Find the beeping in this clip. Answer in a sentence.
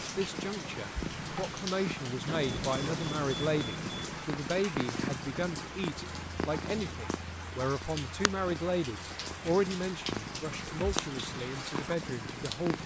The beeping can be heard from 2.2 to 4.2 s.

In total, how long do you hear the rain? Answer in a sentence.
You can hear the rain for 13 seconds altogether.